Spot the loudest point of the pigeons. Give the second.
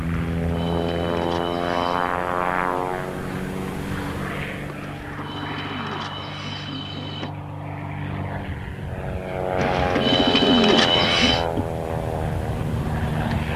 11 s.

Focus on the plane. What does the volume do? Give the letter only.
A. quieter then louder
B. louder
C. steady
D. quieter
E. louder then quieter
A.